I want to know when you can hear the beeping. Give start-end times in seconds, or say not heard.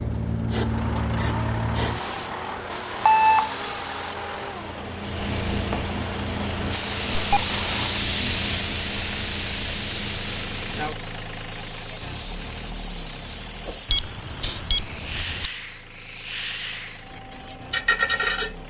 3.0-3.5, 7.1-7.5, 13.9-15.5.